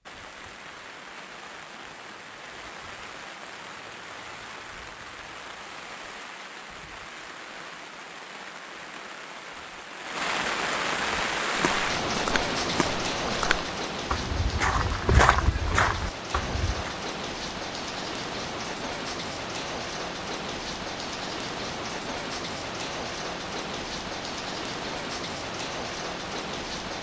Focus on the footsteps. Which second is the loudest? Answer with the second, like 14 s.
15 s.